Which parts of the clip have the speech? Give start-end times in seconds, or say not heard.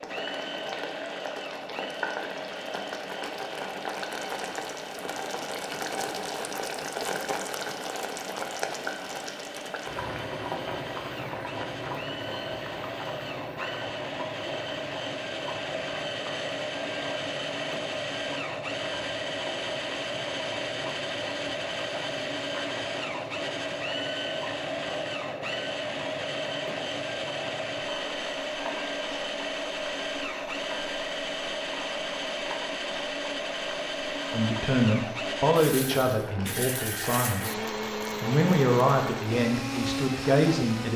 34.3-37.6, 38.2-40.9.